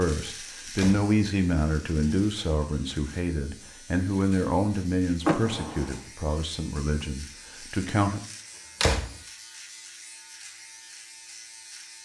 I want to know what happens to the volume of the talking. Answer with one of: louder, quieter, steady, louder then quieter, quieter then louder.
quieter.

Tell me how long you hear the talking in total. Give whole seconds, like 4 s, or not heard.
8 s.